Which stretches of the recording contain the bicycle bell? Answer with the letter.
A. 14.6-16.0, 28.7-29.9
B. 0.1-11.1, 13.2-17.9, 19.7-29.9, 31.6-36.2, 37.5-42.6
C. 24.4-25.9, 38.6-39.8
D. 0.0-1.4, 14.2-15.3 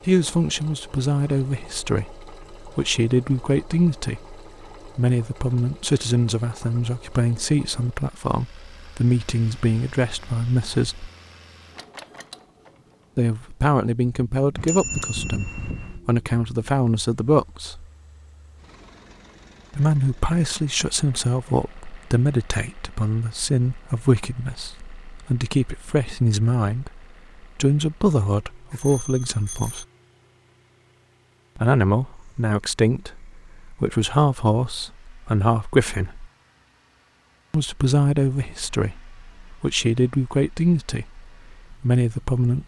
A.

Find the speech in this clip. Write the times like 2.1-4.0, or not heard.
0.1-11.1, 13.2-17.9, 19.7-29.9, 31.6-36.2, 37.5-42.6.